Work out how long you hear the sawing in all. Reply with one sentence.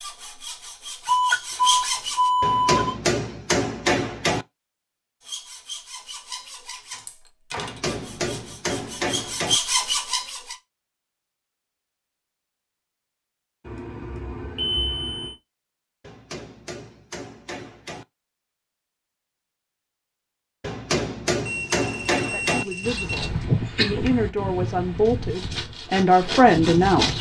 The sawing can be heard for 12 seconds in total.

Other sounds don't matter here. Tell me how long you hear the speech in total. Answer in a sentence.
You can hear the speech for 5 seconds altogether.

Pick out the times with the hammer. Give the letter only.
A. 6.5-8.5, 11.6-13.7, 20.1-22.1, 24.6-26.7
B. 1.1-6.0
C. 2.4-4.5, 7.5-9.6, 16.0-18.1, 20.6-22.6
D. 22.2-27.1
C.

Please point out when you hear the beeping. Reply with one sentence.
The beeping can be heard from 1.1 to 3.0 s, from 13.7 to 15.3 s and from 21.4 to 23.3 s.